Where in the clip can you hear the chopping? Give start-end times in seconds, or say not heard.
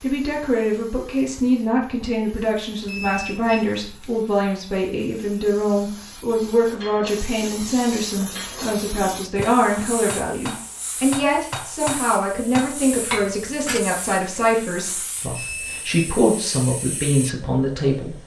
not heard.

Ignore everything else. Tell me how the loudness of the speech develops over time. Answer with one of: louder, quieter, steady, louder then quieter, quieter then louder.
steady.